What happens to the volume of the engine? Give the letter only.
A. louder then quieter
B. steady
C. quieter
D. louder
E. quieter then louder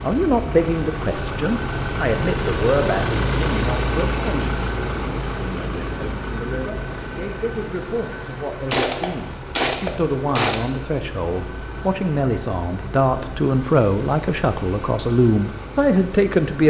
C.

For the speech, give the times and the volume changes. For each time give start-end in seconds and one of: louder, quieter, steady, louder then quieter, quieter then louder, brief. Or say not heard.
0.0-16.6 quieter then louder.